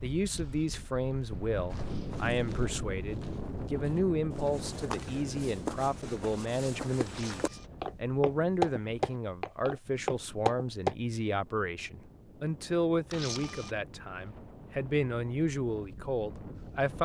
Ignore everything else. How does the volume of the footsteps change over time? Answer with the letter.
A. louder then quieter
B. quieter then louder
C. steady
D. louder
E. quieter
D.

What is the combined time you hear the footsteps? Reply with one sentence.
You can hear the footsteps for 9 seconds altogether.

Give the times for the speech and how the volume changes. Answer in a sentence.
You can hear the speech from 0.0 to 17.0 s, at a steady volume.